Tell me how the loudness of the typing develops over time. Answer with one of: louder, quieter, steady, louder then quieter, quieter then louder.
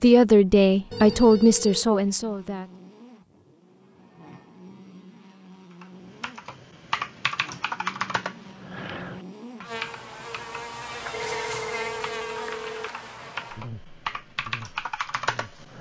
quieter then louder.